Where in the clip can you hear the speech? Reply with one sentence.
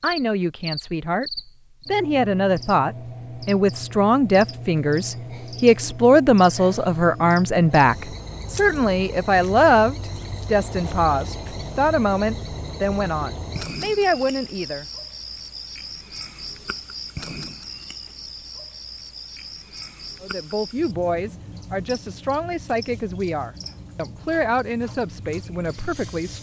The speech can be heard from 0.0 to 14.8 s and from 20.2 to 26.3 s.